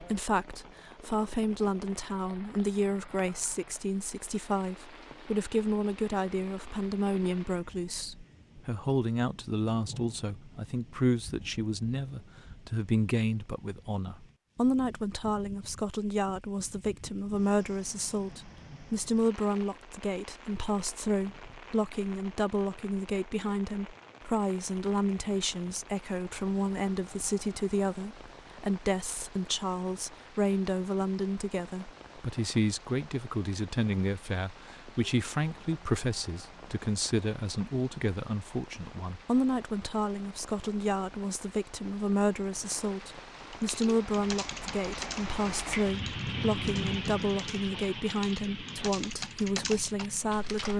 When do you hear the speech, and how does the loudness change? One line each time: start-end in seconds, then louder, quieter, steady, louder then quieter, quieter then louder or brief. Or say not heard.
0.0-50.7 steady.